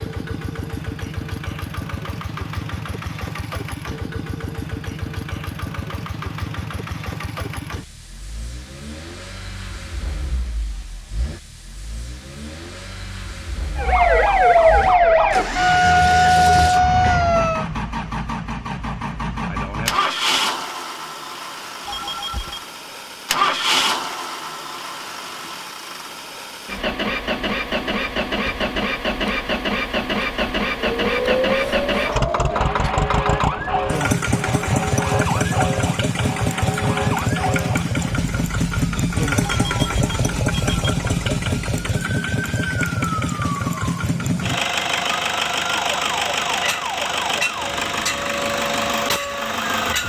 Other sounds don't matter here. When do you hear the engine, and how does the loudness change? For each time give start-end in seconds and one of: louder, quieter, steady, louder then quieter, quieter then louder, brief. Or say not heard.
0.0-50.0 louder.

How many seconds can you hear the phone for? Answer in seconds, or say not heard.
2 s.